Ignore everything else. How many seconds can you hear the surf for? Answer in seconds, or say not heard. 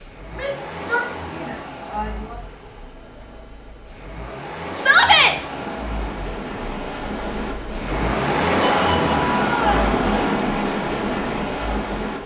7 s.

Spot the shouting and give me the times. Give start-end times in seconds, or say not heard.
0.3-2.4, 4.8-5.3, 8.6-9.9.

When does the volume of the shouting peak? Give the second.
5 s.